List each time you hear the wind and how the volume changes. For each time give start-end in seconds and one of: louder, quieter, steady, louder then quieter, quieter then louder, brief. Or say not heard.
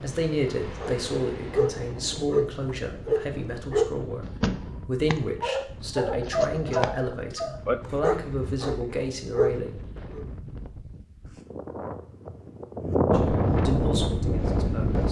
0.0-15.0 louder.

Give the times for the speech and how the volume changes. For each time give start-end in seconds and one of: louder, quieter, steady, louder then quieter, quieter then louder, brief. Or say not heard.
0.0-4.2 quieter
4.8-9.8 steady
13.1-15.0 brief.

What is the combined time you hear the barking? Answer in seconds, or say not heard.
10 s.